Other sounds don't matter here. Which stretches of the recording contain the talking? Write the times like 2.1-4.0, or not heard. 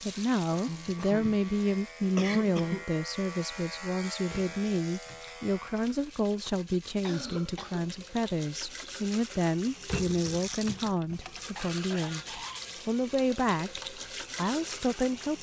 0.0-15.3.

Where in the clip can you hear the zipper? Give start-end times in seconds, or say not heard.
not heard.